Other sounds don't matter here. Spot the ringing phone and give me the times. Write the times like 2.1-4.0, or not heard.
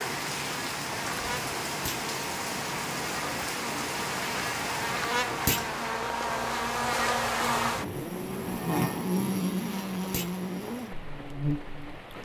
not heard.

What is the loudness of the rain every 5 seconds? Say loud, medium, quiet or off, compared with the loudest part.
loud, medium, medium.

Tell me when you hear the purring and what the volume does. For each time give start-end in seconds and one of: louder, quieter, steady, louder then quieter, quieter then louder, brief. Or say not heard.
not heard.